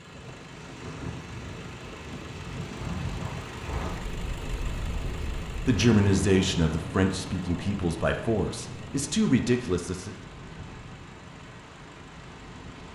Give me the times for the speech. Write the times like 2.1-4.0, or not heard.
5.7-10.2.